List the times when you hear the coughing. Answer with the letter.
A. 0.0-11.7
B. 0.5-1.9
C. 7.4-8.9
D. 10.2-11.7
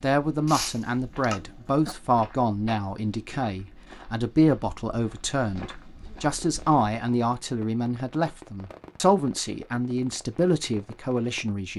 B.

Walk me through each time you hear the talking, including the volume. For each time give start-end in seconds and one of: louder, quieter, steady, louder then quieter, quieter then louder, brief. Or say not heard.
0.0-11.7 steady.